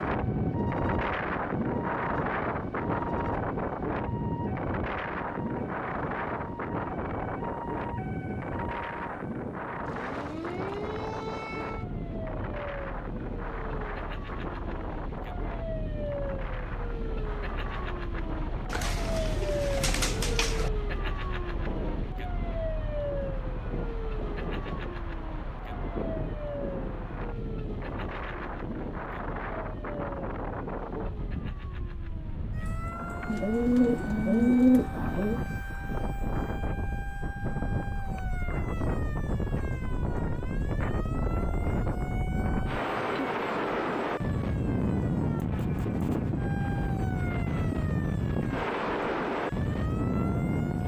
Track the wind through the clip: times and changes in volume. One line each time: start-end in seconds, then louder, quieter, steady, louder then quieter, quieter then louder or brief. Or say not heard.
0.0-50.8 quieter then louder.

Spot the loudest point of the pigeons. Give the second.
35 s.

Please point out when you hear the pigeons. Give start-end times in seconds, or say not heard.
18.7-20.7, 33.2-35.4.